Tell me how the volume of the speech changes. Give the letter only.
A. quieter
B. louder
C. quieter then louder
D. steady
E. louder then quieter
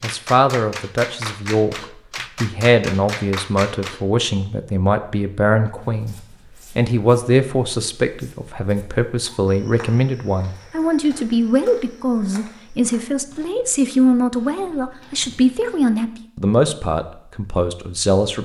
D.